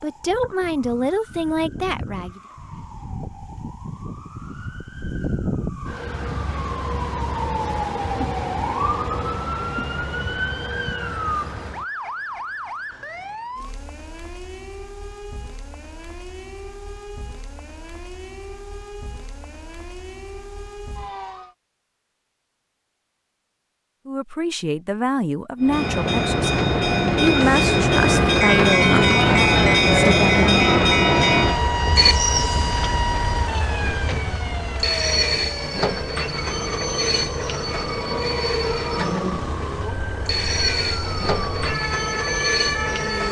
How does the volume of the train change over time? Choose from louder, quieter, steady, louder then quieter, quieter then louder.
quieter.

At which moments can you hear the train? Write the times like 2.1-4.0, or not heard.
25.6-43.2.